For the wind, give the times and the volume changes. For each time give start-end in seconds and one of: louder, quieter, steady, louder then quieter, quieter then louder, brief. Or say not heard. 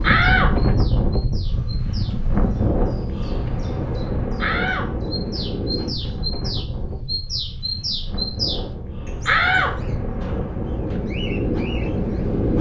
0.0-12.5 quieter then louder.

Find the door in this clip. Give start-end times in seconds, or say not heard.
0.0-0.8, 4.4-6.1, 9.2-10.9.